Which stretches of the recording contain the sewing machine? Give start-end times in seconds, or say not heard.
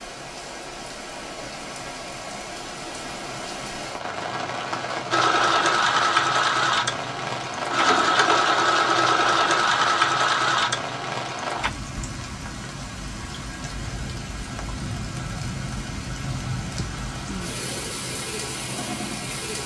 5.1-11.7.